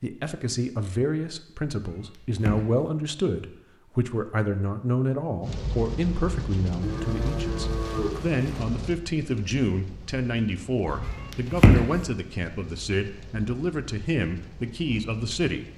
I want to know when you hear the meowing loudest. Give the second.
12 s.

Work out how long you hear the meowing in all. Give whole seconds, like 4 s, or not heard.
2 s.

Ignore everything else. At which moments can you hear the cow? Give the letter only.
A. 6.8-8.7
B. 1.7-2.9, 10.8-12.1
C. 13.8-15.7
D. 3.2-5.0
A.